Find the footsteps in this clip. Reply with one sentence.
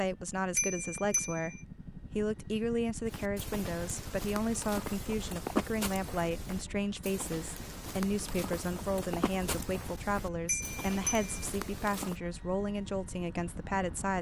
You can hear the footsteps from 3.0 to 12.2 s.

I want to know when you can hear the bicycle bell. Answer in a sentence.
The bicycle bell can be heard from 0.6 to 1.6 s and from 10.4 to 11.4 s.